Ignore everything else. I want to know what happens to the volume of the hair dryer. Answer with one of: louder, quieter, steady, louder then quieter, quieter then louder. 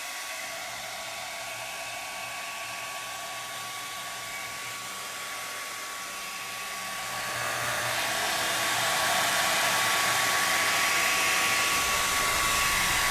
louder.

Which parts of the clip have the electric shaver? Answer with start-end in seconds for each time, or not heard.
6.9-13.0.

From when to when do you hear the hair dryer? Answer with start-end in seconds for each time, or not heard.
0.0-13.0.